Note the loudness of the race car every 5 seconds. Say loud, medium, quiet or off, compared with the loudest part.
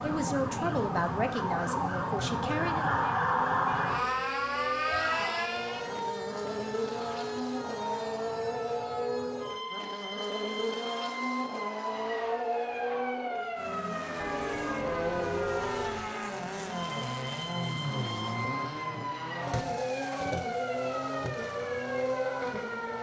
medium, loud, loud, loud, loud.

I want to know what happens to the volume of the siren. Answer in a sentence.
The loudness of the siren goes down.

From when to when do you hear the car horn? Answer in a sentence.
The car horn can be heard from 3.0 to 4.0 s and from 14.2 to 16.1 s.